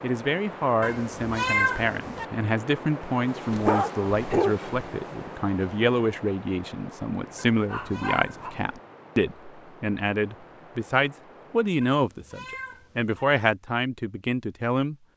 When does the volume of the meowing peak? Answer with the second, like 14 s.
2 s.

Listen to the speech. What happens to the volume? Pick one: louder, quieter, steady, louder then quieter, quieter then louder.
steady.